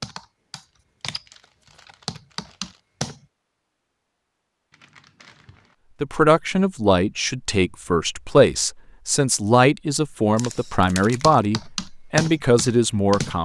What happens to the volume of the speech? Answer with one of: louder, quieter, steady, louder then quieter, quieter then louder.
steady.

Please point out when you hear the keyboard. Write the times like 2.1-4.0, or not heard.
0.0-3.2, 11.0-13.4.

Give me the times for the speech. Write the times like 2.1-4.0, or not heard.
6.0-13.4.